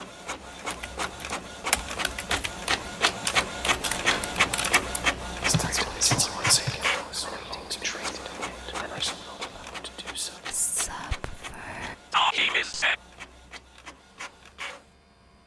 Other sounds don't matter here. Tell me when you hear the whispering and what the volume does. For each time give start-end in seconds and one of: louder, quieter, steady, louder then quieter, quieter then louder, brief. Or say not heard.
5.5-12.9 quieter then louder.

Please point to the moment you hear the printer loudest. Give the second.
5 s.